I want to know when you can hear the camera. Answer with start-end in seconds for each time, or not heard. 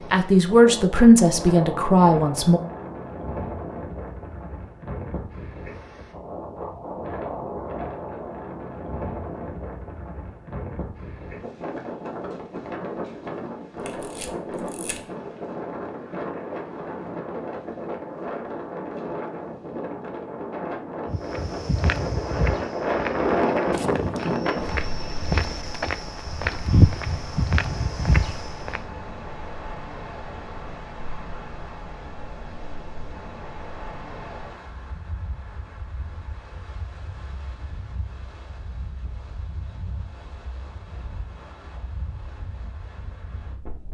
13.8-15.0.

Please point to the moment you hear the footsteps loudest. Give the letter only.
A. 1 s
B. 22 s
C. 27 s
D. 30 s
C.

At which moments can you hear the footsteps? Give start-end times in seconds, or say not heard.
21.1-28.8.